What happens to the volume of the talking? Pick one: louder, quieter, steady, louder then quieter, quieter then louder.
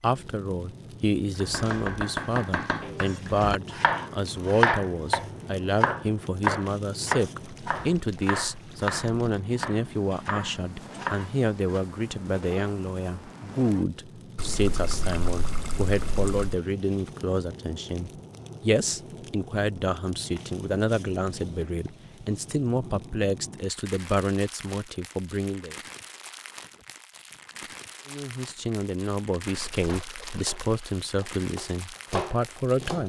steady.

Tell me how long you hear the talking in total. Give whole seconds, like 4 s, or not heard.
31 s.